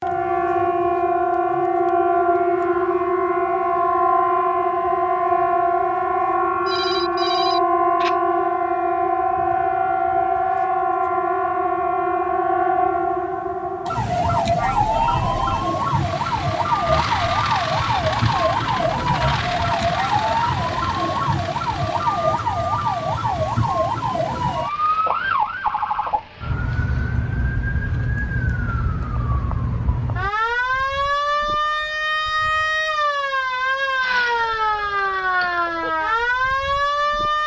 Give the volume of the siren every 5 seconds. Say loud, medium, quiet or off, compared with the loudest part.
loud, loud, loud, loud, loud, medium, loud, loud.